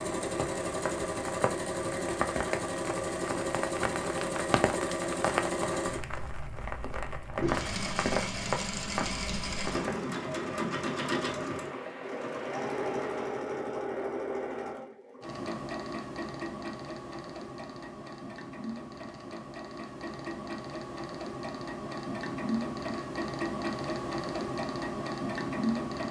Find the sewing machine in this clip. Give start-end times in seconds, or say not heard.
0.0-26.0.